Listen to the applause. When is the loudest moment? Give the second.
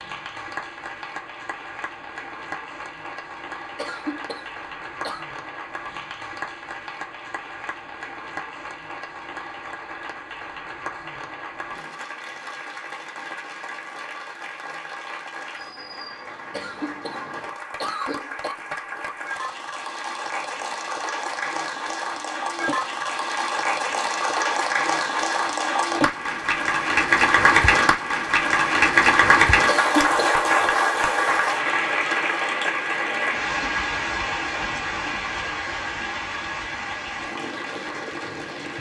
29 s.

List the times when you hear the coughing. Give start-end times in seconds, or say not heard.
3.8-5.2, 16.5-18.6, 29.6-30.4.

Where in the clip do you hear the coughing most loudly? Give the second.
30 s.